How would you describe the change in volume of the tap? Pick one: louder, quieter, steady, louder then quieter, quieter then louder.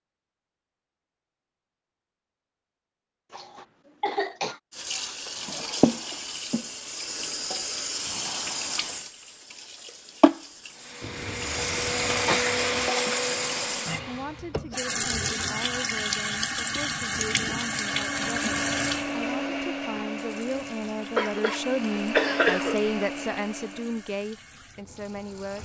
quieter.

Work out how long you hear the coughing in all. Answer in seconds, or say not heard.
5 s.